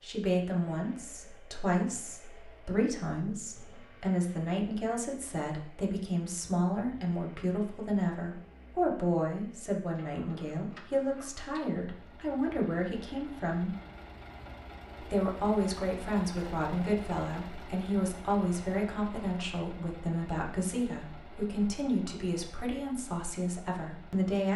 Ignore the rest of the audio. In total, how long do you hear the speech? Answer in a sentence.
You can hear the speech for 23 seconds altogether.